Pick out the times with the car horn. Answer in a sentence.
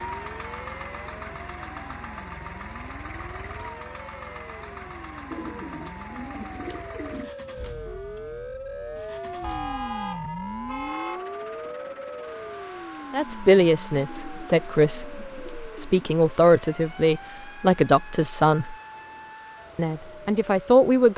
The car horn can be heard from 9.4 to 11.3 s.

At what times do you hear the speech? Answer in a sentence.
The speech can be heard from 13.1 to 18.8 s and from 19.8 to 21.1 s.